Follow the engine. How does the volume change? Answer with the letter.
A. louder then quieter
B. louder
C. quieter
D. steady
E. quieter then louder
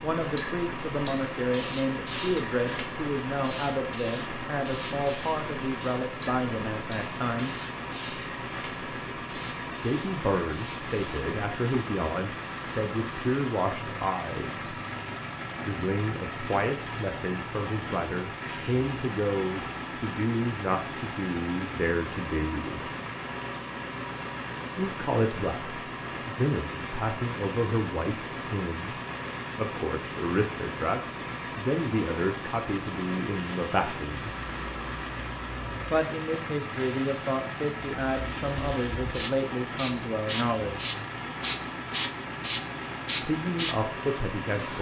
D.